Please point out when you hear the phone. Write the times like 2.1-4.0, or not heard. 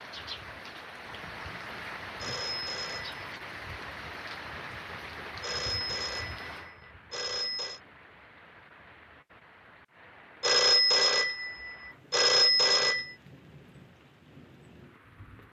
2.2-3.2, 5.4-7.8, 10.4-13.2.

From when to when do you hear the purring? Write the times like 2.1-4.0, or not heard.
not heard.